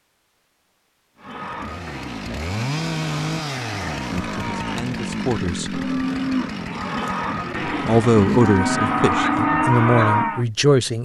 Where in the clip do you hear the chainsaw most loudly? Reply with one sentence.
The loudest moment of the chainsaw is at 3 seconds.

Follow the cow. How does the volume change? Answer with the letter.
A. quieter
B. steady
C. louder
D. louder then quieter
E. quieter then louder
C.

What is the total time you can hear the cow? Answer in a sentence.
The cow can be heard for 9 seconds in total.